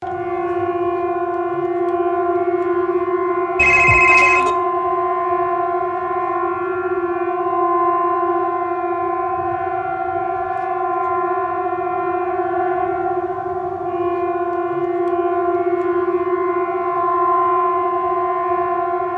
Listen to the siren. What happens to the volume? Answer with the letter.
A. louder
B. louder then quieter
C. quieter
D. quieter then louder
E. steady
E.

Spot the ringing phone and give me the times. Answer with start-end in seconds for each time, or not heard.
3.5-4.5.